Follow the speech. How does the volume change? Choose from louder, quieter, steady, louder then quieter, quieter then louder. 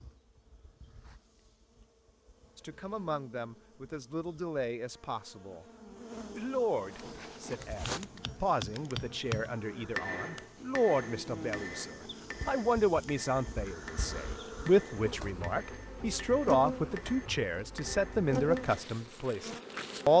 louder.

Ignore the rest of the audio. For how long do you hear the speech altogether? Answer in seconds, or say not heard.
17 s.